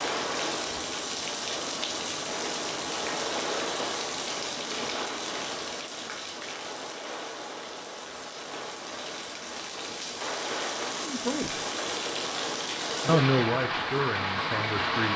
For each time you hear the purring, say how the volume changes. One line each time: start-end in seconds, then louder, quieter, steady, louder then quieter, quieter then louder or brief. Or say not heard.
not heard.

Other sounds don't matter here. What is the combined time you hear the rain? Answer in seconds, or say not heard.
15 s.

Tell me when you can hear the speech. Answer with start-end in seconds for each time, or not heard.
11.0-11.6, 13.1-15.1.